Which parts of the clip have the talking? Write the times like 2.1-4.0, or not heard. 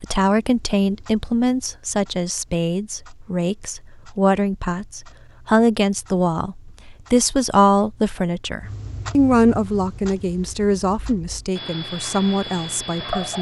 0.0-13.3.